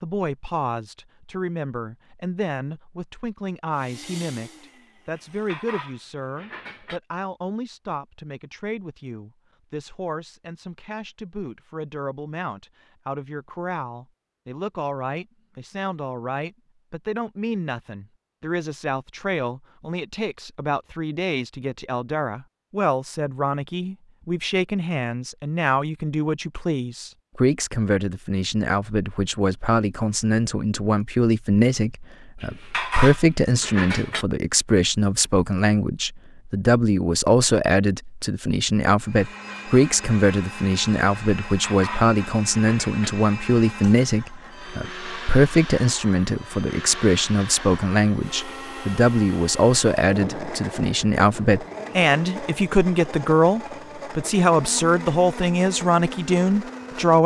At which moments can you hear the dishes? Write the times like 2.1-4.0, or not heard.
5.2-7.0, 32.4-34.2, 41.5-43.1.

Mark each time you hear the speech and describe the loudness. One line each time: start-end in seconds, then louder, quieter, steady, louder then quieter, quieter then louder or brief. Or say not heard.
0.0-57.2 louder.